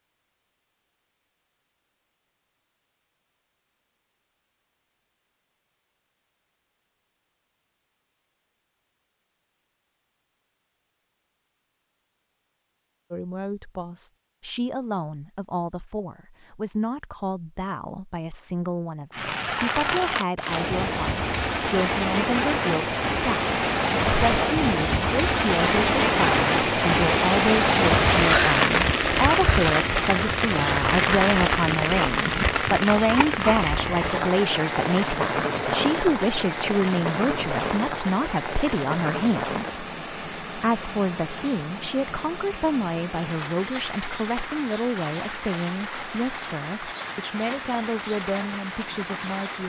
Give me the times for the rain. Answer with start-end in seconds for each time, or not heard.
19.1-49.6.